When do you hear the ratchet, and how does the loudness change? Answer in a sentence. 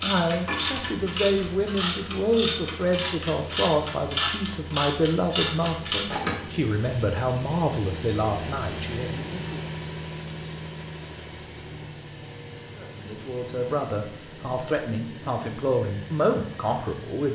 You can hear the ratchet from 0.0 to 6.5 s, at a steady volume.